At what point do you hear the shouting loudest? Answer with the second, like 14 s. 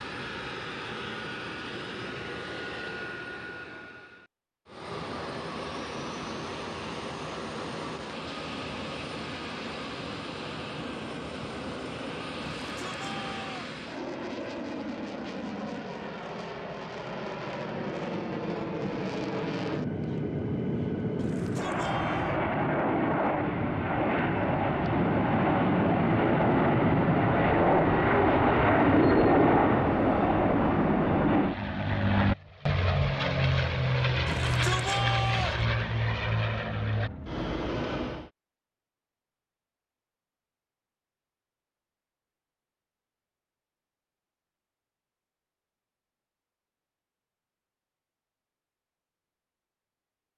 35 s.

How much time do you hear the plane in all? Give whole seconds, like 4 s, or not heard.
38 s.